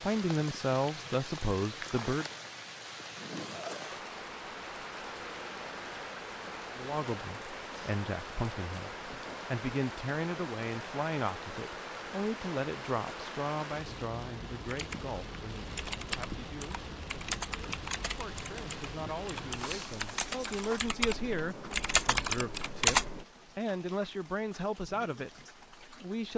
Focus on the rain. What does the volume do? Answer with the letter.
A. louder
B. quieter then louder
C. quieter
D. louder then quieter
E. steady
C.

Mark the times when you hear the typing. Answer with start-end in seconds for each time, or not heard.
14.7-23.2.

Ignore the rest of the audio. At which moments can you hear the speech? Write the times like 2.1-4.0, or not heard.
0.0-2.2, 6.8-26.3.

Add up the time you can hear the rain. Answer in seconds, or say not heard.
26 s.